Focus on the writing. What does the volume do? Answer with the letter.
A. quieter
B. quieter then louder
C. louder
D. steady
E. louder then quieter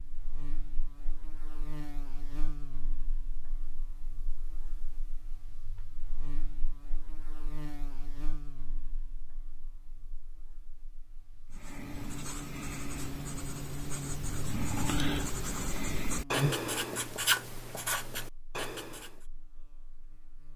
E.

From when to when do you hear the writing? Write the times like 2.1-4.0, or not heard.
11.5-19.2.